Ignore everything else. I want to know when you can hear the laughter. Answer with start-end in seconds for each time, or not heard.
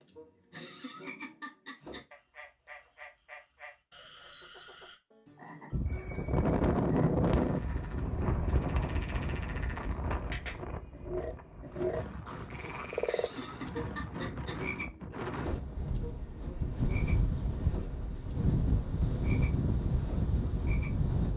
0.5-2.0, 13.1-14.6.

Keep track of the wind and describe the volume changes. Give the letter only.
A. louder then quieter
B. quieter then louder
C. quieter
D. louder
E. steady
B.